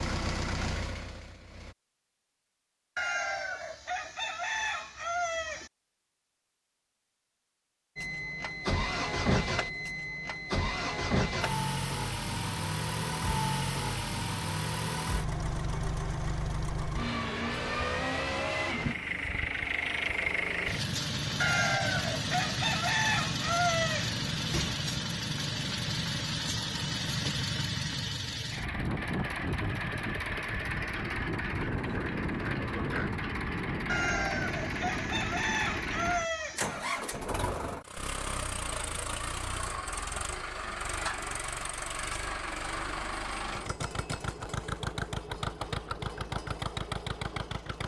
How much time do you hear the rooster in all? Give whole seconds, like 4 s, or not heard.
8 s.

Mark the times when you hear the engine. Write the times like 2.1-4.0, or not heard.
0.0-1.8, 8.0-47.8.